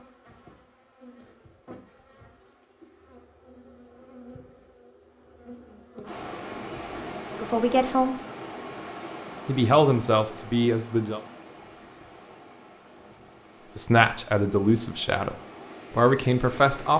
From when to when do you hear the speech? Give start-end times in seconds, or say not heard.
7.3-8.2, 9.4-11.2, 13.8-15.3, 15.9-16.9.